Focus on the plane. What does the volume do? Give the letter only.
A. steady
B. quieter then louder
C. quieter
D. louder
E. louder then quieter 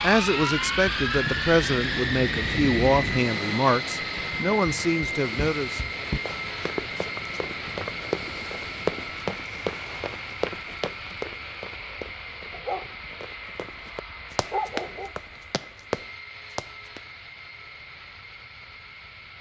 C.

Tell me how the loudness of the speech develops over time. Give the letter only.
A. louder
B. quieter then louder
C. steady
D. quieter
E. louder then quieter
C.